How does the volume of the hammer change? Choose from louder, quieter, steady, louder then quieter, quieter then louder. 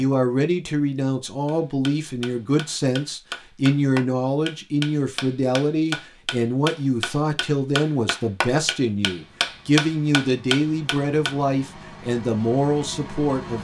louder.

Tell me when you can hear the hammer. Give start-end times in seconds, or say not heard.
1.4-11.3.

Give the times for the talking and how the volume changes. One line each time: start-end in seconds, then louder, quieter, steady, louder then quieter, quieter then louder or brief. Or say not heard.
0.0-13.5 steady.